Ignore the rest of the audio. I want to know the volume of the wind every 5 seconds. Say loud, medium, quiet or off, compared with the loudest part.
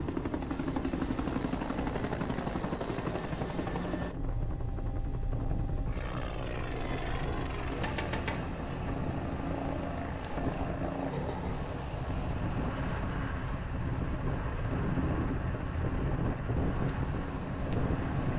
medium, medium, loud, loud.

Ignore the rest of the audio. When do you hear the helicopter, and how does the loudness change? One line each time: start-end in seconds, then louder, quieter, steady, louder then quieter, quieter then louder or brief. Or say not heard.
0.0-18.3 quieter.